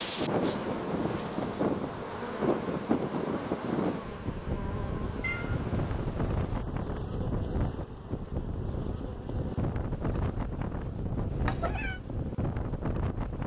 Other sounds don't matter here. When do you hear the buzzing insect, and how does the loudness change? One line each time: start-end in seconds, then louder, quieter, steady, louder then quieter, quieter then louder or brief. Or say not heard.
0.0-13.4 quieter.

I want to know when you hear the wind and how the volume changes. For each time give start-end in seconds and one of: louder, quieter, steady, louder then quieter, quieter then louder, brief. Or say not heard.
0.0-13.4 steady.